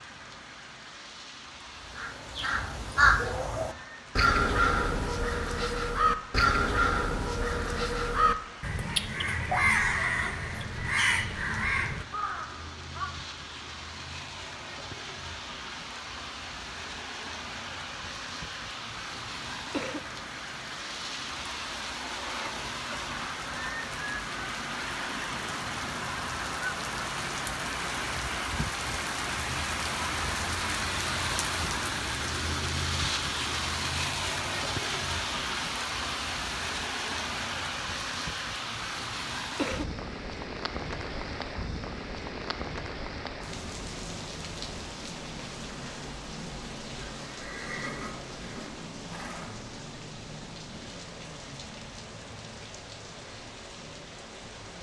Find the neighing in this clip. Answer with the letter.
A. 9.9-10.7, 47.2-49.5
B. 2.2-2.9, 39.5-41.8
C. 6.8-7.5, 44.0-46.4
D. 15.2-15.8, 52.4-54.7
A.